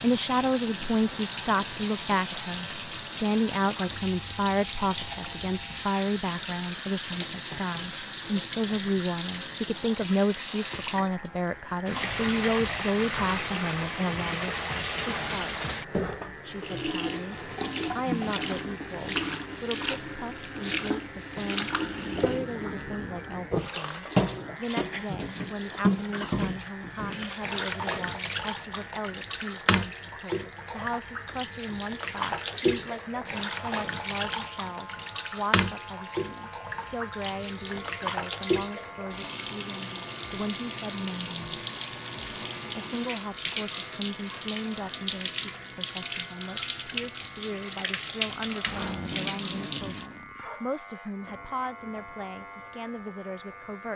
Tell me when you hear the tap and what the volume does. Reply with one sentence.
The tap can be heard from 0.0 to 50.1 s, at a steady volume.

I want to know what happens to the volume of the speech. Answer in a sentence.
The volume of the speech goes down.